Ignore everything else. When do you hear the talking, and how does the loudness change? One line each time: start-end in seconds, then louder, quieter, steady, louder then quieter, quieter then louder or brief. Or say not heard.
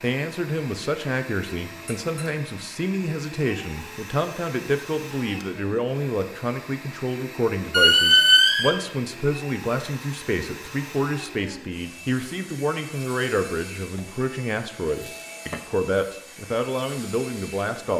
0.0-17.9 steady.